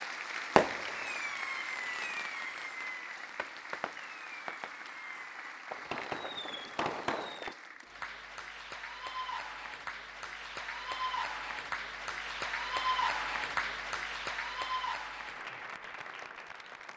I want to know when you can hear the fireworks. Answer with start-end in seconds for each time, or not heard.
0.6-7.5.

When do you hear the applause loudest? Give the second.
13 s.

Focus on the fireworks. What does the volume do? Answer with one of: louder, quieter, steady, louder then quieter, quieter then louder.
quieter then louder.